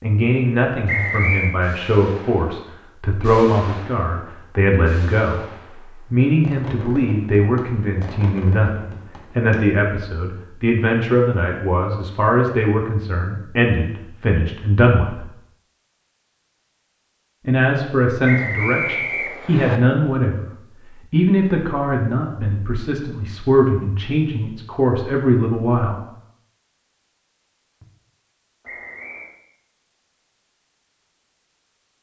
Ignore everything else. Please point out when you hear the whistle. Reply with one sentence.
The whistle can be heard from 0.8 to 1.6 s, from 18.2 to 19.8 s and from 28.6 to 29.4 s.